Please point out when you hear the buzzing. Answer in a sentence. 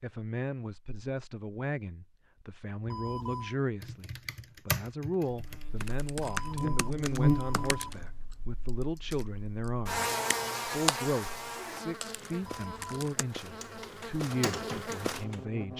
The buzzing can be heard from 5.3 to 15.7 s.